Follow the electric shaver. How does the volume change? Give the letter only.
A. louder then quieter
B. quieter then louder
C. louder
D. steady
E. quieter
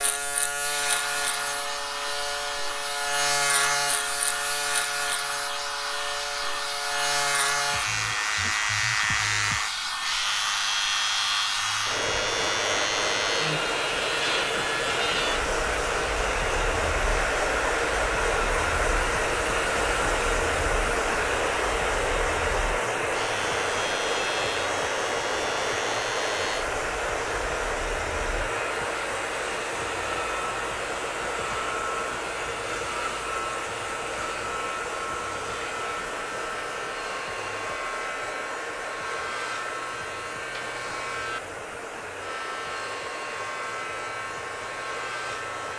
E.